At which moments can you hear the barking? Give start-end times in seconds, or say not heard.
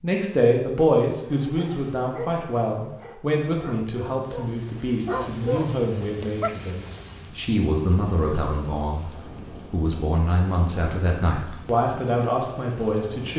1.2-7.2.